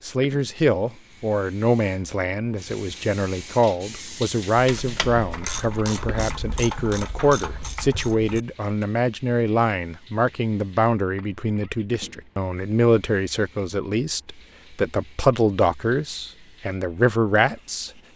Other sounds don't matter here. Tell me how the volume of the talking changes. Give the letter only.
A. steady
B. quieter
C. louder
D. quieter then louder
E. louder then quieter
A.